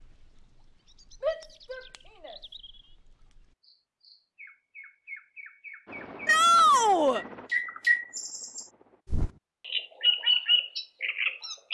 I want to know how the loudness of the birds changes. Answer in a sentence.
The volume of the birds goes up.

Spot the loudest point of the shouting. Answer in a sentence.
The volume of the shouting peaks at 7 seconds.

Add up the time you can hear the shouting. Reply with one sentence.
You can hear the shouting for 2 seconds altogether.